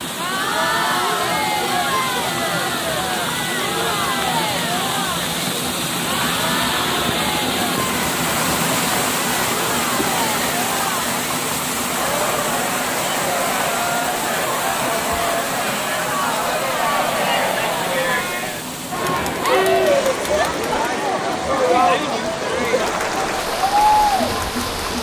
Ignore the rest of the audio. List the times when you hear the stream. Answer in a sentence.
The stream can be heard from 0.0 to 24.9 s.